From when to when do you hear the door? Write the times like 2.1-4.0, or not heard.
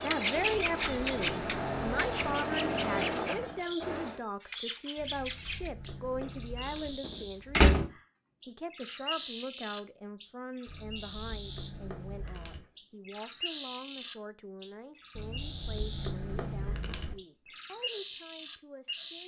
7.0-7.8.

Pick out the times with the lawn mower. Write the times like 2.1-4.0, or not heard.
0.0-4.2.